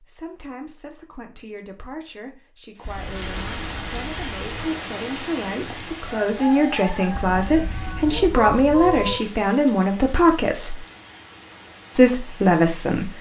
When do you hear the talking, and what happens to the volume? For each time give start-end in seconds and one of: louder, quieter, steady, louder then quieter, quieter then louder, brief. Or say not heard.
0.0-10.8 louder
11.9-13.1 brief.